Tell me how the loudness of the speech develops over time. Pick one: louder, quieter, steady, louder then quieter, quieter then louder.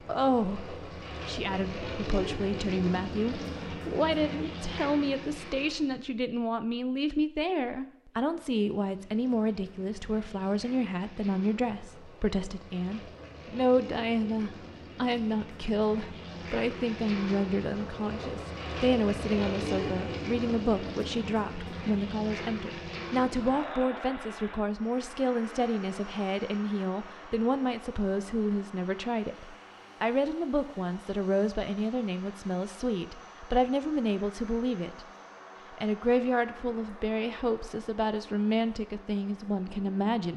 steady.